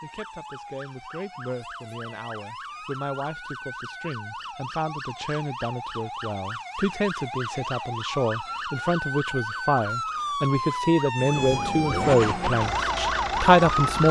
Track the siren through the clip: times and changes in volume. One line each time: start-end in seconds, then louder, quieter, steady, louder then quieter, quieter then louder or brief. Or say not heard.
0.0-14.0 louder.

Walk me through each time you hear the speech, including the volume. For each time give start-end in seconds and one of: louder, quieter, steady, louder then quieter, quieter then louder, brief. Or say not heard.
0.0-14.0 louder.